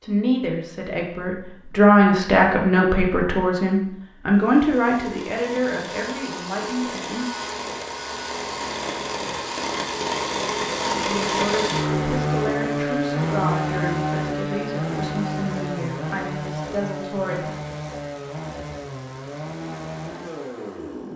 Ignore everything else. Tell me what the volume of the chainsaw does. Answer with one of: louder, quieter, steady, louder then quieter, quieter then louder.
louder then quieter.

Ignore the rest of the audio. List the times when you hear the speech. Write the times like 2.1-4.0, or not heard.
0.0-7.2, 10.9-17.5.